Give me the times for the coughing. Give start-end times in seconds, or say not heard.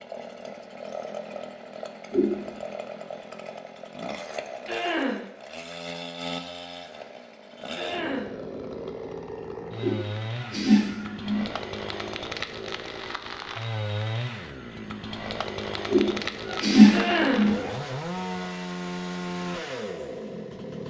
4.7-5.2, 7.8-8.3, 16.9-17.5.